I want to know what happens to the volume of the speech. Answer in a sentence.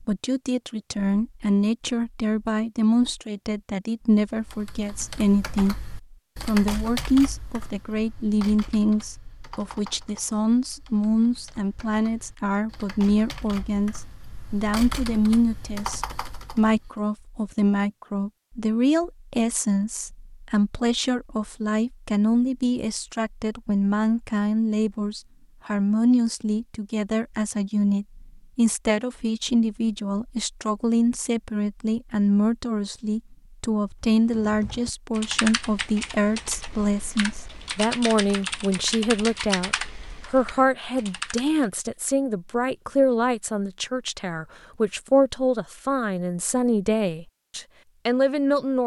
The loudness of the speech stays about the same.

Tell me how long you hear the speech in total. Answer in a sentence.
The speech can be heard for 49 seconds in total.